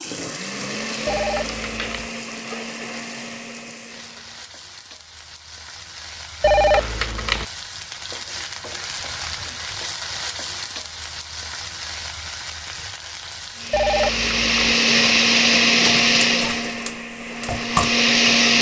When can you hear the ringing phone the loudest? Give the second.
7 s.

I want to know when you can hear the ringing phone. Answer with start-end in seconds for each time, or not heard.
1.1-2.1, 6.4-7.5, 13.7-14.8.